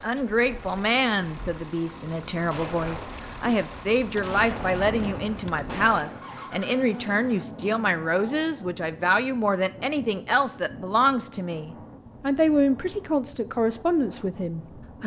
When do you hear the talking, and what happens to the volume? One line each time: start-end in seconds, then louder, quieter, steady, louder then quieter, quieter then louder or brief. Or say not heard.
0.0-15.0 steady.